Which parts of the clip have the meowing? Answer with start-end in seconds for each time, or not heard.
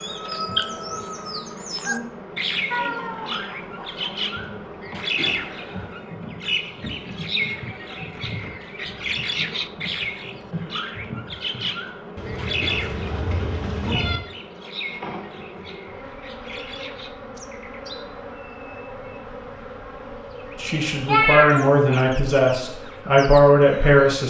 2.7-4.1, 12.2-14.2, 21.1-22.0.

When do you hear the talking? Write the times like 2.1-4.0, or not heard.
20.6-24.2.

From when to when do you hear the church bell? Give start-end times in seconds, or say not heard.
not heard.